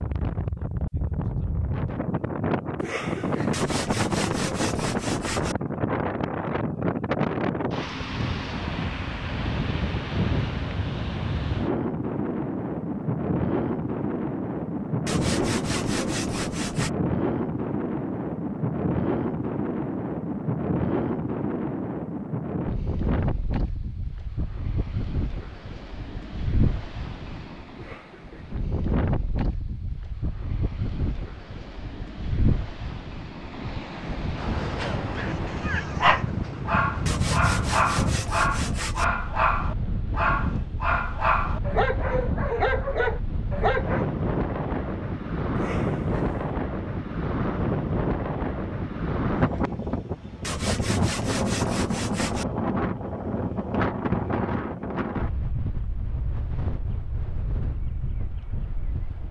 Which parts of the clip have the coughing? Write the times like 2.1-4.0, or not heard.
2.8-3.6, 27.8-28.6, 45.5-46.5.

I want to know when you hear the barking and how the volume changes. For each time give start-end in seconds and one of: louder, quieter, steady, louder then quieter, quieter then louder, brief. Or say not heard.
34.8-44.0 steady.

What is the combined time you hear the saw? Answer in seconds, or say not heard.
8 s.